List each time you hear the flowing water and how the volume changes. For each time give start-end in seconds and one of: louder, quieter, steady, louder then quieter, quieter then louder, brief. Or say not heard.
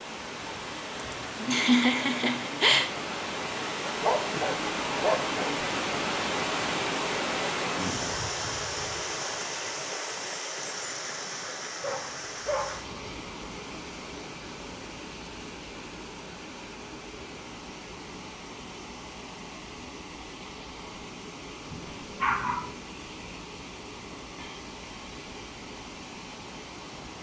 0.0-27.1 quieter.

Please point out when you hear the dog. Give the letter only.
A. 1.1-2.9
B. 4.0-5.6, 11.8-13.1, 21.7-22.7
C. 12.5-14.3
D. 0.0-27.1
B.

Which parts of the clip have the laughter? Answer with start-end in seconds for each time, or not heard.
1.1-2.9.